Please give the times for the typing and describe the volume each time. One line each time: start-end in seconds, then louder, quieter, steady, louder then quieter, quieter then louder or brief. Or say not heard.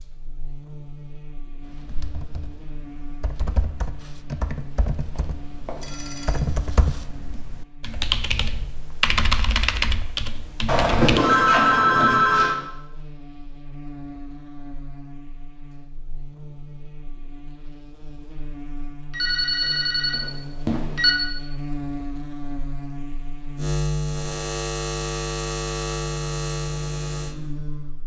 1.6-11.2 louder.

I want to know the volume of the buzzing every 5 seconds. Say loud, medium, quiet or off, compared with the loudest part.
quiet, quiet, quiet, quiet, loud, loud.